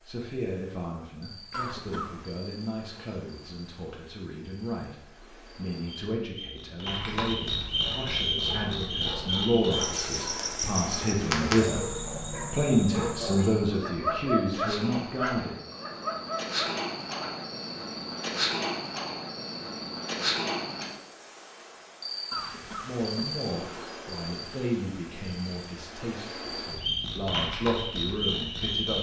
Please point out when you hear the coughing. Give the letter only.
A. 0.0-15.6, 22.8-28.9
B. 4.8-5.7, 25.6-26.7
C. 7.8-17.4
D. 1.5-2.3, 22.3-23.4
D.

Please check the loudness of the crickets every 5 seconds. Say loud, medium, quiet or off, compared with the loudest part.
quiet, loud, loud, loud, loud, loud.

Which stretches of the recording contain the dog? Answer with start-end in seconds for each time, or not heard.
7.8-17.4.